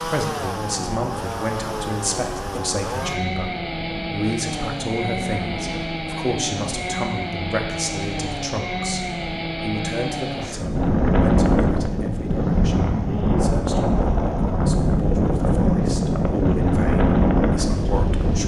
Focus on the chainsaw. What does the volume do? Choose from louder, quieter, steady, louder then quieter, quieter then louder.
quieter.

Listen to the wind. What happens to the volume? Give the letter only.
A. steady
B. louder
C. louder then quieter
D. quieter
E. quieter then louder
B.